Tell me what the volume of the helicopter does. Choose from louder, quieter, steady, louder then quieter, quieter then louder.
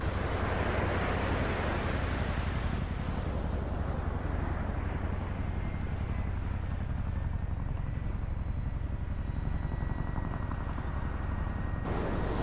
steady.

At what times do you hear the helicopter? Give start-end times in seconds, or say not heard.
0.0-12.3.